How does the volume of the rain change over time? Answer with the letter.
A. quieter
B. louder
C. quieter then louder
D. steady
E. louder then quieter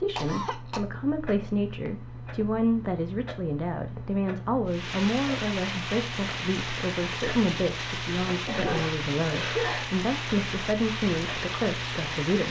D.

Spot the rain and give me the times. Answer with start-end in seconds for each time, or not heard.
4.7-12.4.